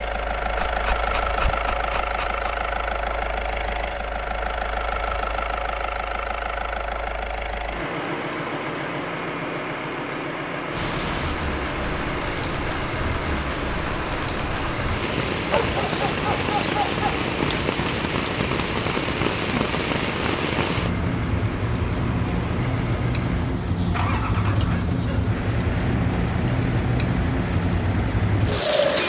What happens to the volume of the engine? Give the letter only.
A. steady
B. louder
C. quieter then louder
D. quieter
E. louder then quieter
D.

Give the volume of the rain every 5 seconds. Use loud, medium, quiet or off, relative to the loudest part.
off, off, medium, loud, loud, loud.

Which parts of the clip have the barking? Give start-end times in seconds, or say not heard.
0.6-2.6, 15.4-17.2, 23.8-25.2.